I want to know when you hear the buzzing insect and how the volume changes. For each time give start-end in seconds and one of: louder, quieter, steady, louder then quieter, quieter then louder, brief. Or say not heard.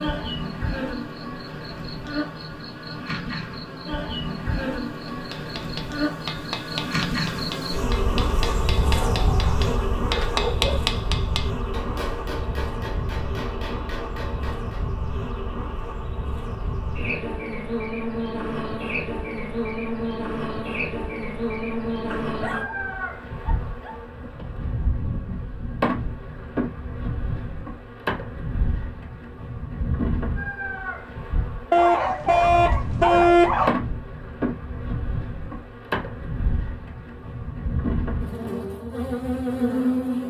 0.0-40.2 steady.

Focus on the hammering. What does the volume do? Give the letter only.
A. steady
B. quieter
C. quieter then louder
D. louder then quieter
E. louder
D.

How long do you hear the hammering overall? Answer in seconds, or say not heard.
10 s.